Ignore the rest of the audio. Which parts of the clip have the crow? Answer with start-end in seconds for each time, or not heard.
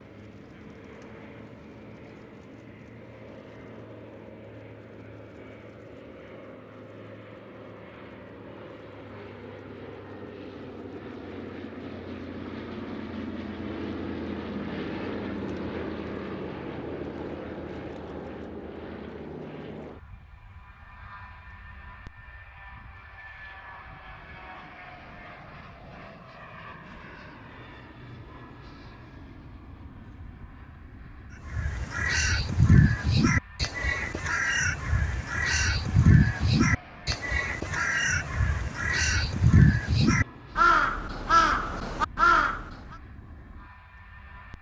31.5-42.7.